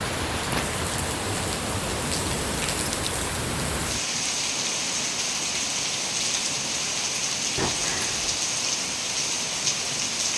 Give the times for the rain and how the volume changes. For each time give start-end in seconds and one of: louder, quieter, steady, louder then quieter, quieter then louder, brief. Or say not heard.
0.0-10.3 steady.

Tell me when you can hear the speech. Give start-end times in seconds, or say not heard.
not heard.